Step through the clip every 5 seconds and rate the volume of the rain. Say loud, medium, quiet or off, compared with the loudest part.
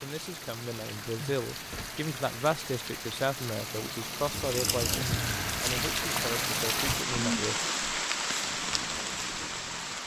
medium, loud.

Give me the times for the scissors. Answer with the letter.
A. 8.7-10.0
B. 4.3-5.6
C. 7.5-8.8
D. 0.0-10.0
B.